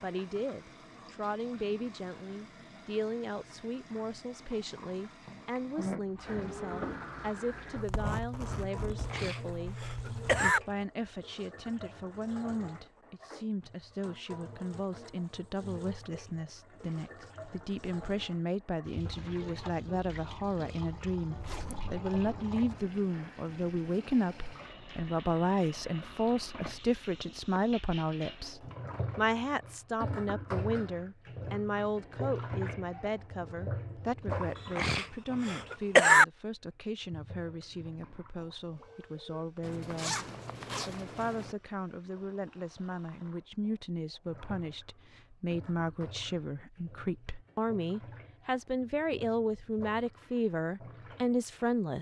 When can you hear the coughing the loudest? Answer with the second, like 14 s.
36 s.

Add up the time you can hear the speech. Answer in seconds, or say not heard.
52 s.